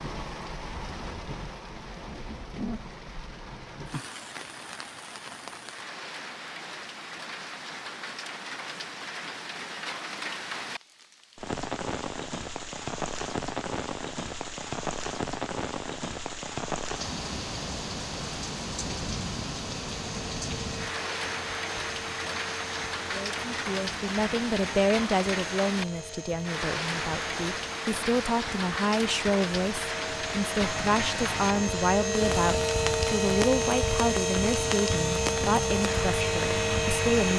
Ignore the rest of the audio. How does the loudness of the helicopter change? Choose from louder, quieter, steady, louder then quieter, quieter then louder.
louder.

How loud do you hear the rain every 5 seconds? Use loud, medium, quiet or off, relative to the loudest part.
medium, medium, loud, loud, loud, loud, loud, loud.